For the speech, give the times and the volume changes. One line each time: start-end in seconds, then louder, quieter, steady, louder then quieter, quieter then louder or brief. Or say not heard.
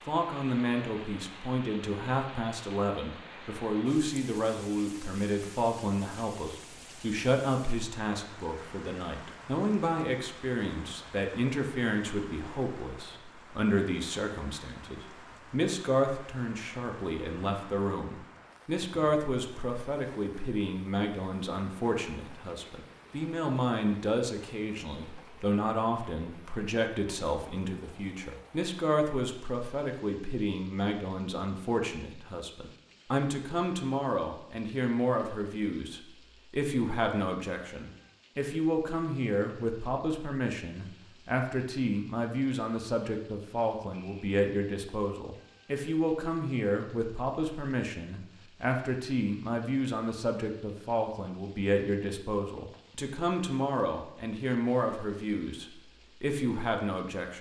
0.1-57.3 steady.